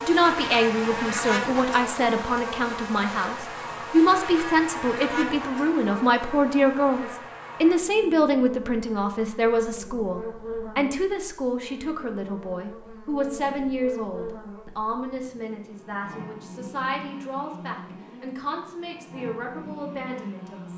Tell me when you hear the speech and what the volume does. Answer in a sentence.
You can hear the speech from 0.0 to 20.7 s, getting quieter.